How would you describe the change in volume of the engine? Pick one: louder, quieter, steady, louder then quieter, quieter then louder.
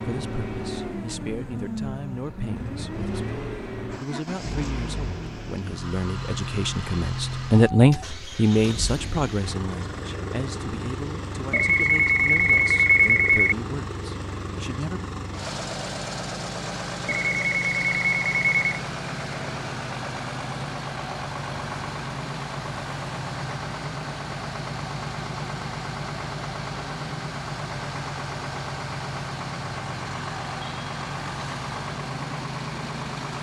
steady.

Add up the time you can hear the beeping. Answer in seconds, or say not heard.
4 s.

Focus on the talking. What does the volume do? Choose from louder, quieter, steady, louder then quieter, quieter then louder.
louder then quieter.